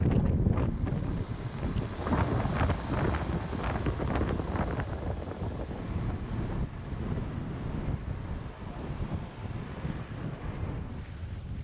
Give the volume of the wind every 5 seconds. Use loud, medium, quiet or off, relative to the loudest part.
loud, medium, medium.